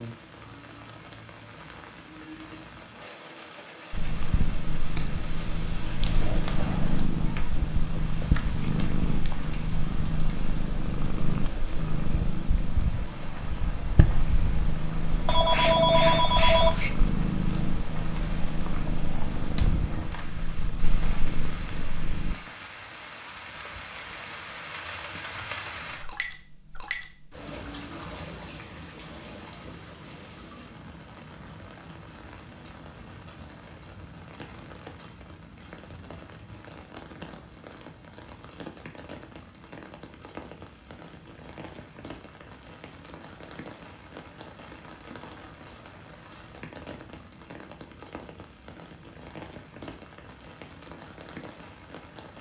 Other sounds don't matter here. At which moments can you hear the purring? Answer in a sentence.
The purring can be heard from 3.9 to 22.4 s.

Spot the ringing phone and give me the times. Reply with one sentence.
The ringing phone can be heard from 15.2 to 16.9 s.